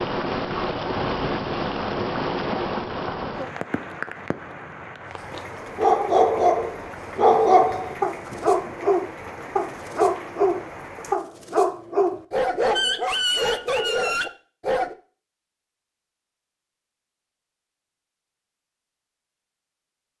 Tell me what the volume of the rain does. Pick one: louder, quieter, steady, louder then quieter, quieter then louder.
quieter.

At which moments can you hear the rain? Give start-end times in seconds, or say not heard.
0.0-11.2.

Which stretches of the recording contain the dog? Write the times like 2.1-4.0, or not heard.
5.1-14.9.